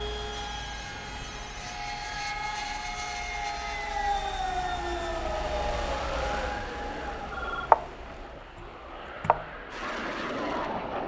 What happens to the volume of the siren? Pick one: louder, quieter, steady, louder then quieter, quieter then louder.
louder then quieter.